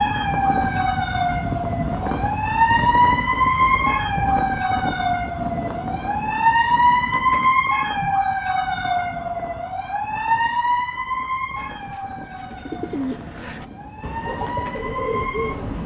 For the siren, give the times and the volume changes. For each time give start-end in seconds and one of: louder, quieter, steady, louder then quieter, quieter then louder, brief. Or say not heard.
0.0-15.8 quieter.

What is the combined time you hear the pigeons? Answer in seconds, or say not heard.
4 s.